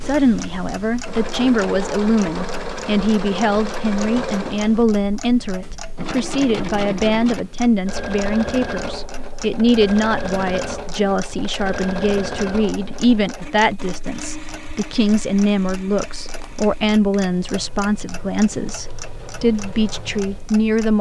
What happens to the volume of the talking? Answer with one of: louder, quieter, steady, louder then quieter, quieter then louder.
steady.